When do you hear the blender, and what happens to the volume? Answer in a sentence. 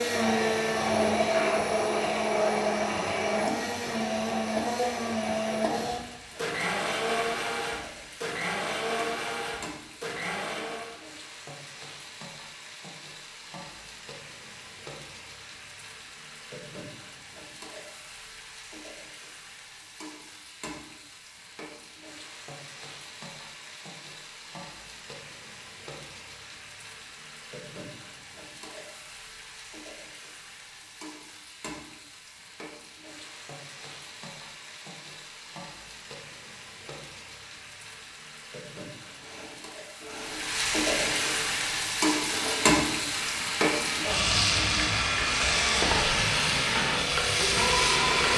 The blender can be heard from 0.0 to 11.1 s, getting quieter; and from 39.0 to 48.3 s, getting louder.